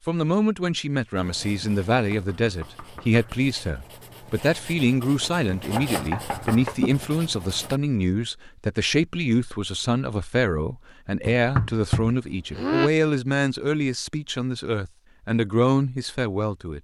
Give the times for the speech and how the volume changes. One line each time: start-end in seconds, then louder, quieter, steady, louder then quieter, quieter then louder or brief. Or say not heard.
0.1-16.8 steady.